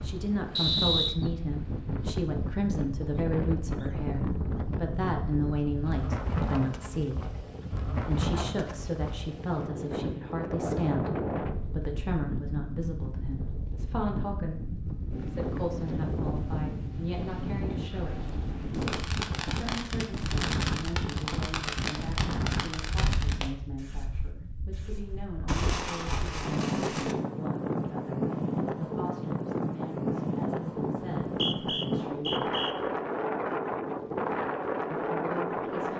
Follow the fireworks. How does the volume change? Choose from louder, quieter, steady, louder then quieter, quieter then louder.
quieter then louder.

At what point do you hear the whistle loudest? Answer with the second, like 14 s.
1 s.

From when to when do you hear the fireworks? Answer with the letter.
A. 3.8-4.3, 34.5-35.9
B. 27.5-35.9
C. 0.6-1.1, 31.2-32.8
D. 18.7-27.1
D.